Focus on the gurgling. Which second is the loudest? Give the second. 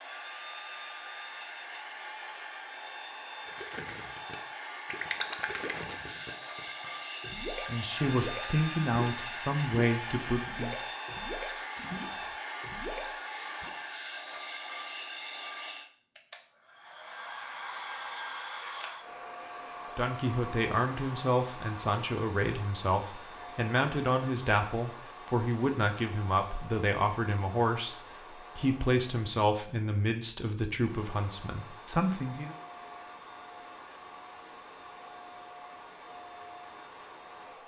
5 s.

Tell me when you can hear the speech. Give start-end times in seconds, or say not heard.
7.7-10.8, 19.9-32.5.